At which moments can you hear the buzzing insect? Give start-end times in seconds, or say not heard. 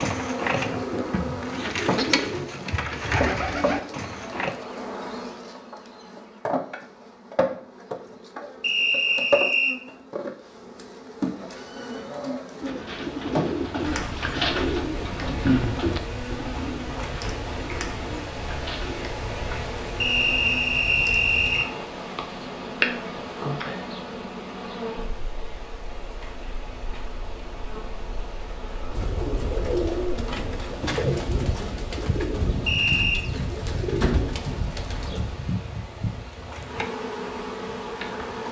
0.0-38.4.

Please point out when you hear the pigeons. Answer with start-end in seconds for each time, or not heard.
0.0-4.5, 12.6-19.1, 28.9-35.4.